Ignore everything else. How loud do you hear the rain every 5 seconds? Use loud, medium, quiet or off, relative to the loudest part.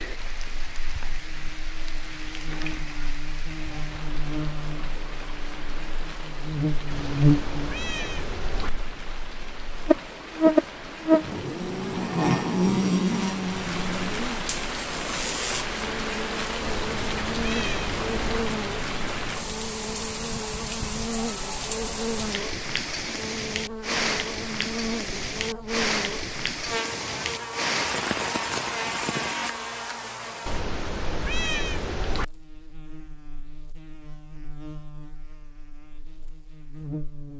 medium, medium, medium, loud, loud, loud, off, off.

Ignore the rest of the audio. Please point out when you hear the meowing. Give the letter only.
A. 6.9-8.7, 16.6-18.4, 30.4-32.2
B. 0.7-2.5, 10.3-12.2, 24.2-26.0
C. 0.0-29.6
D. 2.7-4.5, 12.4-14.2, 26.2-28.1
A.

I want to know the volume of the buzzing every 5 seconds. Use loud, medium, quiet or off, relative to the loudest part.
quiet, loud, loud, medium, medium, medium, quiet, quiet.